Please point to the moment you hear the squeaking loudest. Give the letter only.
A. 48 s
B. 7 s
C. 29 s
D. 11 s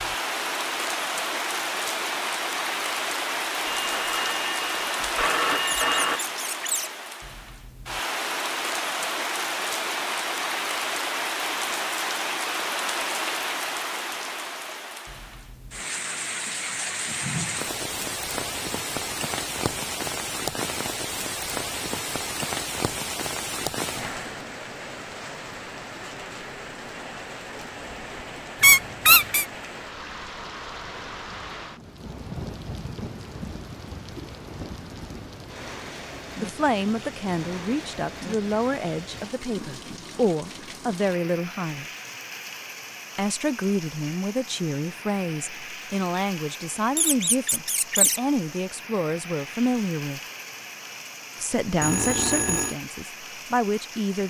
C.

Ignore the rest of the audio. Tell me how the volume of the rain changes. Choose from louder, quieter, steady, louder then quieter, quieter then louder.
quieter.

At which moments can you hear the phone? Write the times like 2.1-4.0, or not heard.
3.6-6.2, 51.8-52.8.